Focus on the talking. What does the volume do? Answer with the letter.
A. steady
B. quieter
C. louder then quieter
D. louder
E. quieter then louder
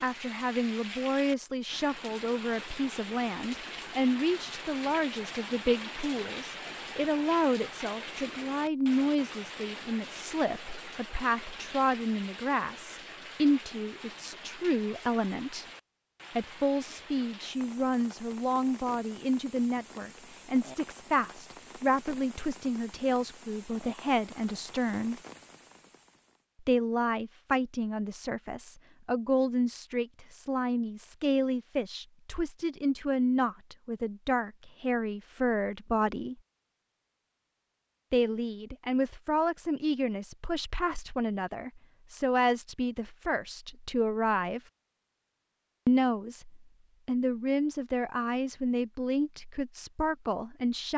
A.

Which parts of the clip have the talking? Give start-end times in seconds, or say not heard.
0.0-15.7, 16.4-25.2, 26.6-36.4, 38.1-44.6, 45.9-50.9.